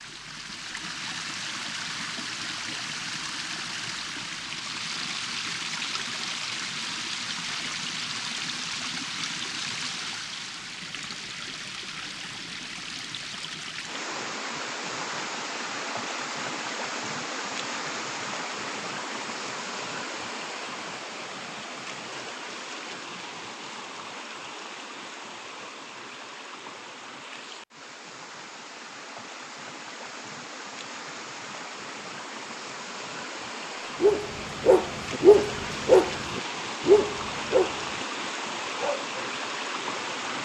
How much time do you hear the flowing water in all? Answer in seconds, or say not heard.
40 s.